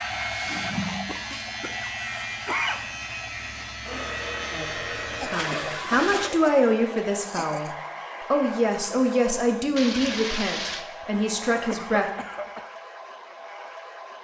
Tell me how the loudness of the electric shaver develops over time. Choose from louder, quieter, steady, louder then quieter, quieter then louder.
steady.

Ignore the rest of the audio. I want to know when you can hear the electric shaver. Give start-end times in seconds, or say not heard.
0.0-5.3.